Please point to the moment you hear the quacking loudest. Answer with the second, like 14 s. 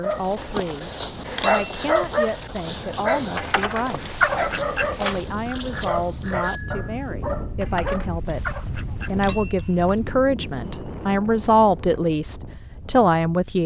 4 s.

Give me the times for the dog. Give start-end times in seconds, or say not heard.
0.0-8.1.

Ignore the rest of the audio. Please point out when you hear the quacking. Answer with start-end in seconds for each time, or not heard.
3.4-5.2, 7.6-9.2.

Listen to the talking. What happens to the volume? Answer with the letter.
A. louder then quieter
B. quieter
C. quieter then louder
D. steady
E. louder
E.